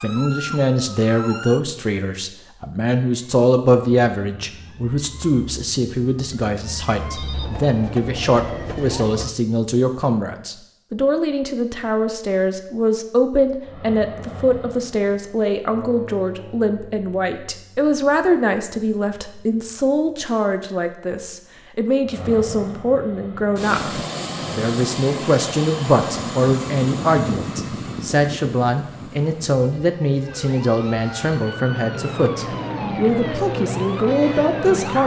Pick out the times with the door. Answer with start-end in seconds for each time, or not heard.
not heard.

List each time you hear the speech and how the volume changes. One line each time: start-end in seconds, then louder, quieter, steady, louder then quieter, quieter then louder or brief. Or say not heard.
0.0-35.0 steady.